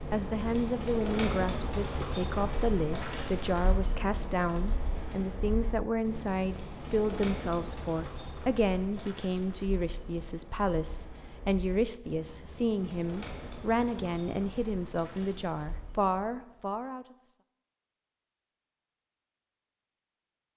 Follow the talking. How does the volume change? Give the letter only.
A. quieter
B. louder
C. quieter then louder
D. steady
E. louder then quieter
D.